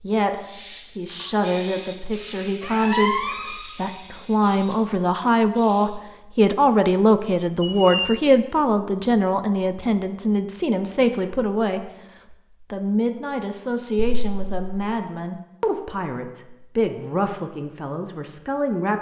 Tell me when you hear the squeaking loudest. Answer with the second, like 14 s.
3 s.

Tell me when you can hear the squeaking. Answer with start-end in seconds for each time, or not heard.
2.6-3.6, 7.6-8.2, 13.9-14.8.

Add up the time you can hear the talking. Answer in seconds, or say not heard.
19 s.